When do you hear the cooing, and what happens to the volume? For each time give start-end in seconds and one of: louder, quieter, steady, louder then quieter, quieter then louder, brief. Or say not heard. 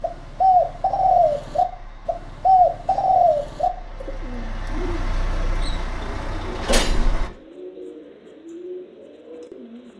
0.0-9.9 quieter.